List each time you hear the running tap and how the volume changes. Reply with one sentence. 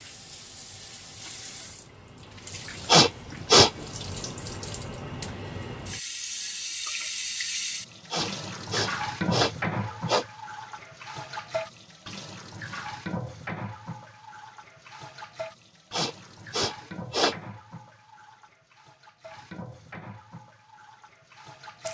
The running tap can be heard from 0.0 to 21.8 s, getting louder then quieter.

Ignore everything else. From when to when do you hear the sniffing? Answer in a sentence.
The sniffing can be heard from 2.9 to 3.9 s, from 8.1 to 10.2 s and from 15.9 to 17.4 s.